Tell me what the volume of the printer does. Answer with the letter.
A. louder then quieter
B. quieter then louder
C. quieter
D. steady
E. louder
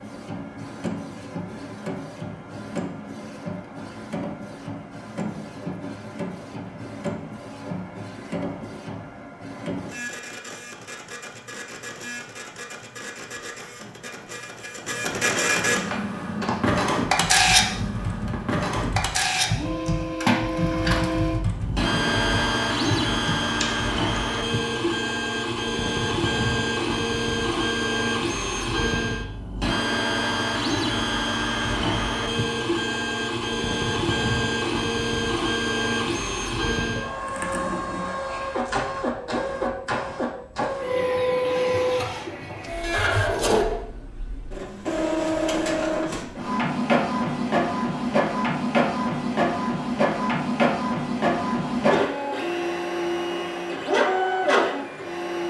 E.